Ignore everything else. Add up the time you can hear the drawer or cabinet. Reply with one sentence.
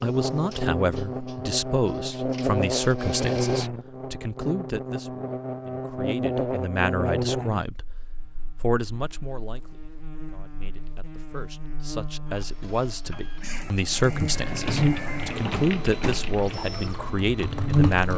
The drawer or cabinet can be heard for 2 seconds in total.